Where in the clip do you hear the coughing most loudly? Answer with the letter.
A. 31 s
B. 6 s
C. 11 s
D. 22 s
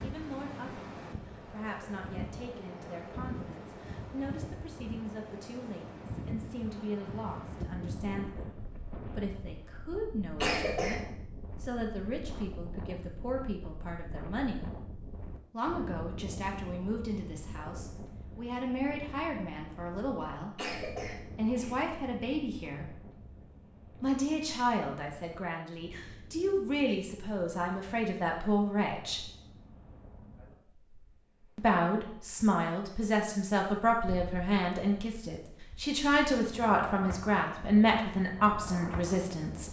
C.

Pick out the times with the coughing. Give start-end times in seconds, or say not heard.
10.3-11.1, 20.6-21.9.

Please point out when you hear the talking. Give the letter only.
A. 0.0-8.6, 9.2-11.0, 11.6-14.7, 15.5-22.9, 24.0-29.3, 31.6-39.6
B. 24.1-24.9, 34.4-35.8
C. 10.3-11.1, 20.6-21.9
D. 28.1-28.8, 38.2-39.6
A.